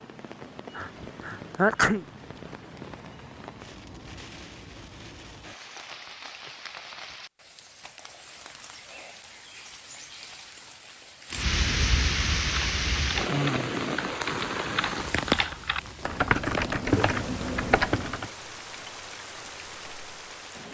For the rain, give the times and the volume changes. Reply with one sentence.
You can hear the rain from 0.0 to 20.6 s, getting louder then quieter.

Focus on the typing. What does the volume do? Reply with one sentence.
The loudness of the typing goes up.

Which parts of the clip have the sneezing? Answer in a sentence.
The sneezing can be heard from 0.8 to 2.0 s.